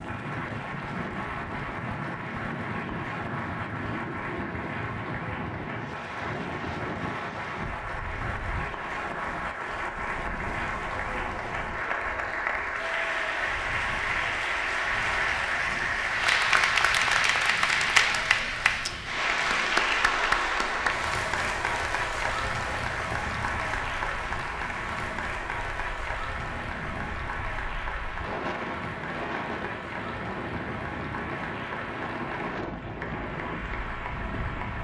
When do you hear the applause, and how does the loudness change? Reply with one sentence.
The applause can be heard from 0.0 to 34.8 s, getting louder then quieter.